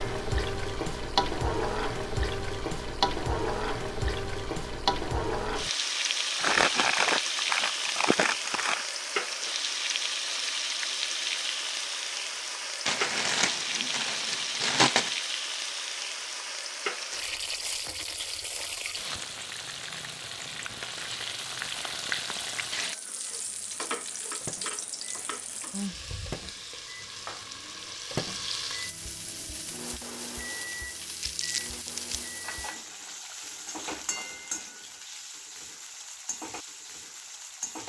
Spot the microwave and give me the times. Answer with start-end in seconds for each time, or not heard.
23.2-32.8.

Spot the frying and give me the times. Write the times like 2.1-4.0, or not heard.
0.0-37.8.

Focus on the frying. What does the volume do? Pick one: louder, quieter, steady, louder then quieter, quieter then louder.
quieter.